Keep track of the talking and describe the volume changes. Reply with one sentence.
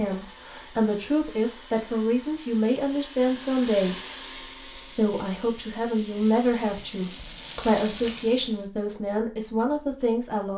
The loudness of the talking stays about the same.